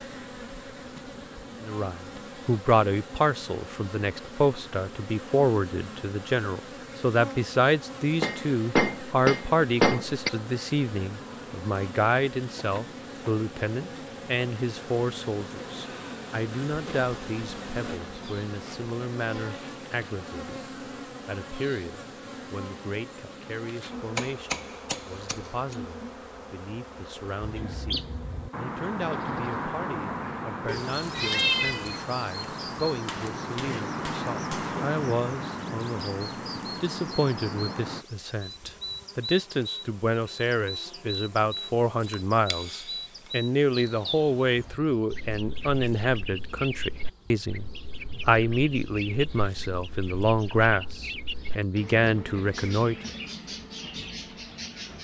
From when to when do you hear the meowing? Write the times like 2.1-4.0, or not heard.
30.6-32.0.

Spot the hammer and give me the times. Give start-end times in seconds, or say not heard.
8.2-10.3, 23.9-25.8, 33.0-34.9, 42.0-43.3.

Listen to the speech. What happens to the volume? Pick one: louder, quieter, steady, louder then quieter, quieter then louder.
quieter then louder.